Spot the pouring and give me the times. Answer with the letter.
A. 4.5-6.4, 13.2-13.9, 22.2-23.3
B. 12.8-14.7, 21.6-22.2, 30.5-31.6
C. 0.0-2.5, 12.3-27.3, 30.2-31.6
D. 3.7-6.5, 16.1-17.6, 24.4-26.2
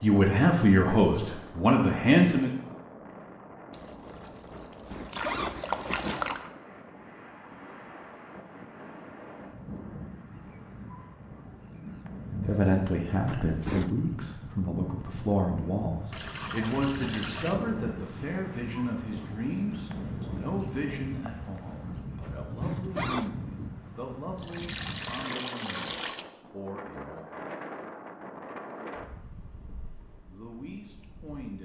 D.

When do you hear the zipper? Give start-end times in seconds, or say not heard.
4.5-6.4, 13.2-13.9, 22.2-23.3.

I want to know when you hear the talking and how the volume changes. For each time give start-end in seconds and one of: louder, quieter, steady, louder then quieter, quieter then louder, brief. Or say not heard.
0.0-2.5 brief
12.3-27.3 quieter
30.2-31.6 brief.